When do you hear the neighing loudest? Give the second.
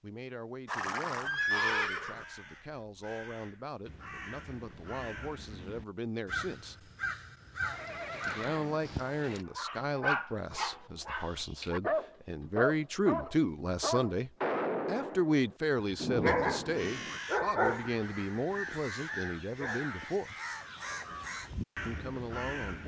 2 s.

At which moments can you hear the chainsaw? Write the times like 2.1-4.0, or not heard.
not heard.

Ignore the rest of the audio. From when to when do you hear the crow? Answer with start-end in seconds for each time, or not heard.
1.4-9.1, 16.1-22.8.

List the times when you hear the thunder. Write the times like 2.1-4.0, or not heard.
15.9-17.2.